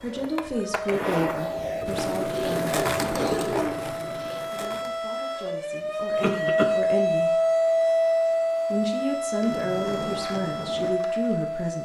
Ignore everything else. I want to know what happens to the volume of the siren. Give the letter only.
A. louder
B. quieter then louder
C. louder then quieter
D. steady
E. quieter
C.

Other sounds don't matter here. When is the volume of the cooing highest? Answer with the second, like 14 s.
3 s.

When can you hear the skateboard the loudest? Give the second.
3 s.